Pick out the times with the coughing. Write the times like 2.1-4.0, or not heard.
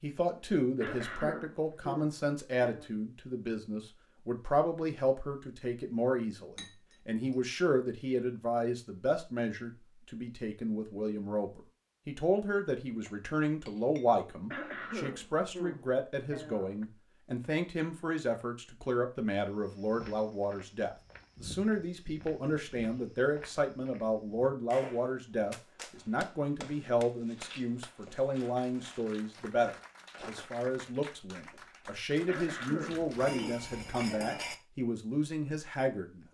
0.8-2.9, 14.5-16.9, 32.2-34.4.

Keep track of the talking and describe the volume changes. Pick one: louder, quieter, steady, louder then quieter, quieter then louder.
steady.